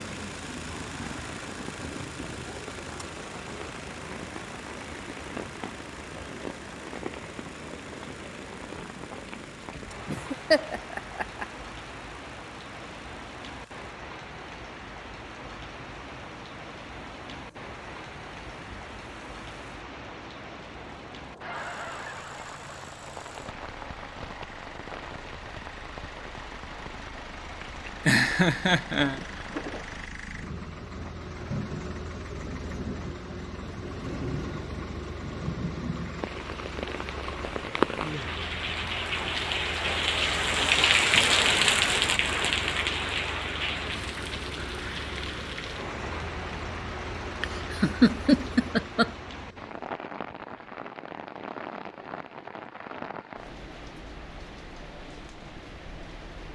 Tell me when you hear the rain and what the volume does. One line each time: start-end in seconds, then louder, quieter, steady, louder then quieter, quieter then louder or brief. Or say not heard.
0.0-56.5 louder then quieter.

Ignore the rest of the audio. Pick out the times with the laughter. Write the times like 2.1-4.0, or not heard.
10.1-11.4, 28.1-29.2, 47.4-49.1.